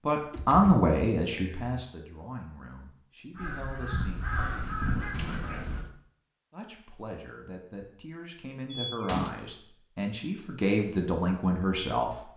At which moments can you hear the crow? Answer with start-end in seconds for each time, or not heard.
3.4-5.8.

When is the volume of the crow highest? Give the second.
5 s.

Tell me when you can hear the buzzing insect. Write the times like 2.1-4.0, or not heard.
not heard.